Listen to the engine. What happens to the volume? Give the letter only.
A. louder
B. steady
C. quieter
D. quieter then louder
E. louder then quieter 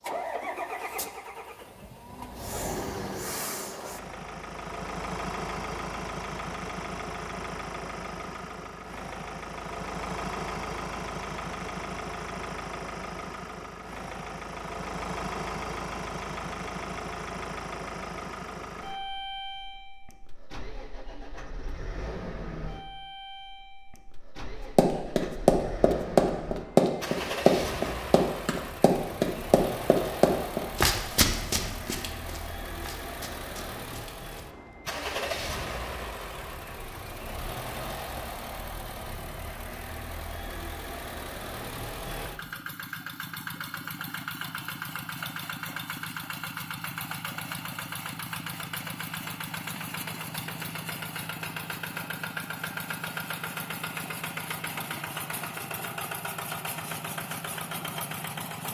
B.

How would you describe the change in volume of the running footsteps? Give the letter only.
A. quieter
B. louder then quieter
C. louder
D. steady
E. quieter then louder
A.